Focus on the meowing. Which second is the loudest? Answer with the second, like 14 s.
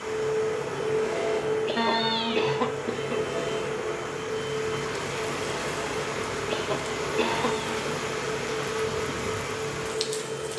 2 s.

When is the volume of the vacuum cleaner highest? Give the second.
1 s.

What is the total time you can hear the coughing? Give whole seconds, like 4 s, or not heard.
3 s.